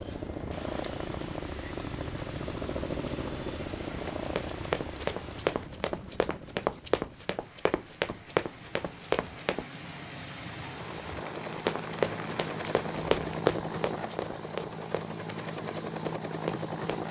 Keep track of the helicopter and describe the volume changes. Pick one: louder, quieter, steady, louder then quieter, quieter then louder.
quieter then louder.